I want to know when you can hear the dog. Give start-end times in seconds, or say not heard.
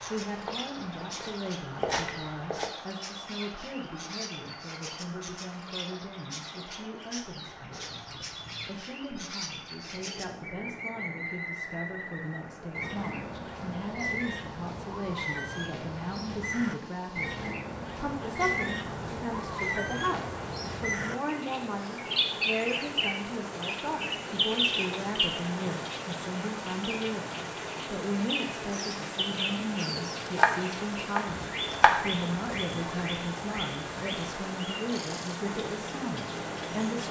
not heard.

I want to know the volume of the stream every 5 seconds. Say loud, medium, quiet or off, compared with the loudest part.
medium, medium, medium, medium, loud, loud, loud, loud.